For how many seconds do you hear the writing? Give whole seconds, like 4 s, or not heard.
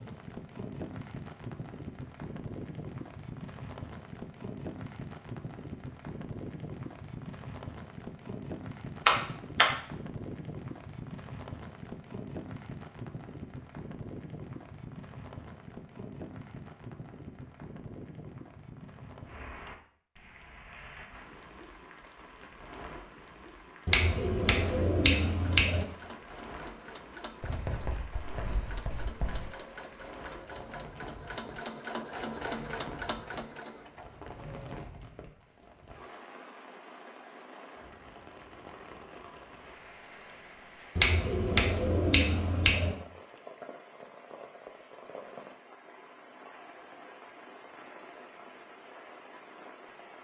2 s.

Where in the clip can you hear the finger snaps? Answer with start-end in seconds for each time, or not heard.
9.1-9.7, 23.9-25.9, 41.0-43.0.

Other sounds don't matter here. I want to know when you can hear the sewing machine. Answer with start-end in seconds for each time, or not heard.
25.3-35.0.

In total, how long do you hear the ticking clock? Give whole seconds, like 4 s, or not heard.
not heard.